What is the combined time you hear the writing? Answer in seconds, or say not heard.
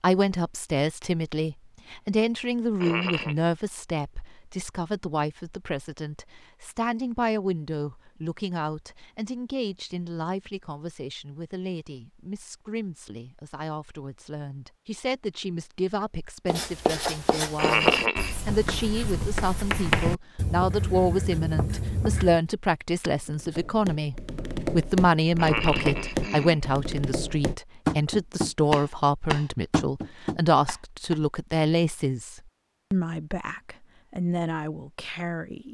6 s.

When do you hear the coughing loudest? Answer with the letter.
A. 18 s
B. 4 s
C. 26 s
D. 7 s
A.